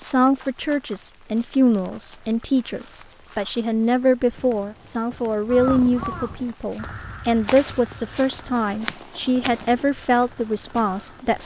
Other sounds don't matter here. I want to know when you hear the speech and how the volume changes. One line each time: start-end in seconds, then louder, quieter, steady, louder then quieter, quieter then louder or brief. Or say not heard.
0.0-11.4 steady.